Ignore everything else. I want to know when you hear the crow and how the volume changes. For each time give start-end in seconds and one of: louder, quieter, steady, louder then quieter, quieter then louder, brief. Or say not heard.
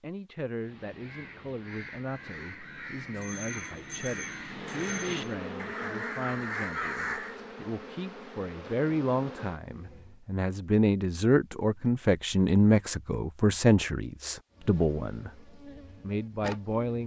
0.6-7.3 louder.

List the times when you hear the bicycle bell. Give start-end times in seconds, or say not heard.
3.1-5.2.